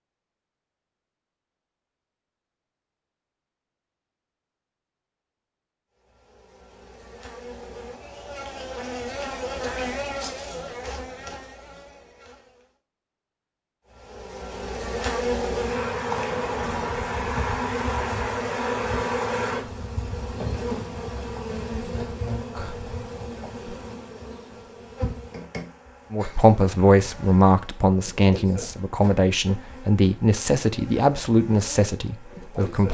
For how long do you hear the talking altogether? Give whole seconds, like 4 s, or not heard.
7 s.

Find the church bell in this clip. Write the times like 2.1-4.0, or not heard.
not heard.